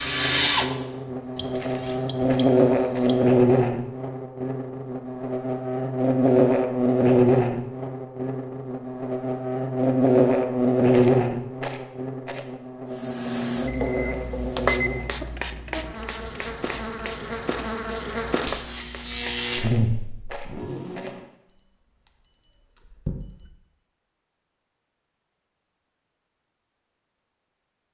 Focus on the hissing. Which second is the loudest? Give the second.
15 s.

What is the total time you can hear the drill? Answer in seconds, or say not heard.
2 s.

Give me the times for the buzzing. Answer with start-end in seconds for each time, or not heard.
0.0-21.1.